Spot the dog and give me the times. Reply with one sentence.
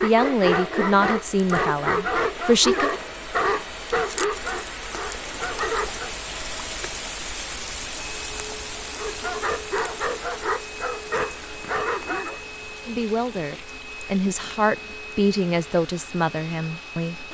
The dog can be heard from 0.0 to 6.1 s and from 8.9 to 12.4 s.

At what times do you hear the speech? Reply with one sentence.
The speech can be heard from 0.0 to 2.9 s and from 12.8 to 17.2 s.